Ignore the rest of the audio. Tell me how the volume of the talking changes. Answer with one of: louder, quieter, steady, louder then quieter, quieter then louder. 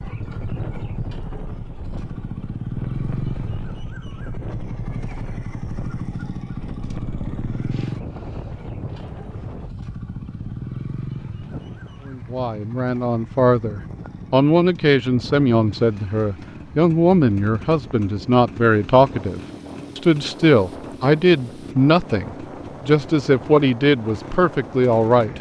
steady.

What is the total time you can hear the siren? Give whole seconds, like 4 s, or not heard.
not heard.